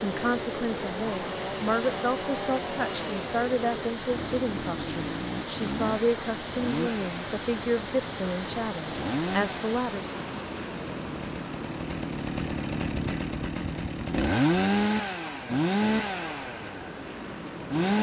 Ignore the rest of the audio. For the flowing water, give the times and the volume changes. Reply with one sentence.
The flowing water can be heard from 0.0 to 17.9 s, getting quieter.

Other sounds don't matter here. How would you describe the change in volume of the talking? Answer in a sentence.
The volume of the talking stays about the same.